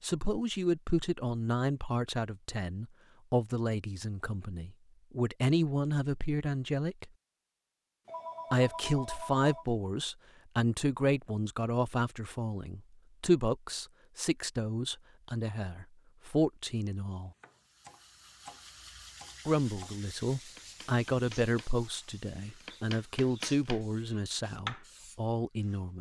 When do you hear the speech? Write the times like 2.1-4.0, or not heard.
0.0-7.1, 8.5-17.3, 19.4-25.9.